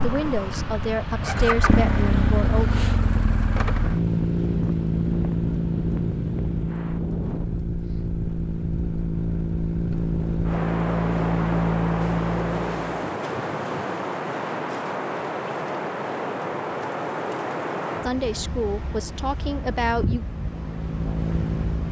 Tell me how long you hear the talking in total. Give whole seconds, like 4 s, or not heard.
5 s.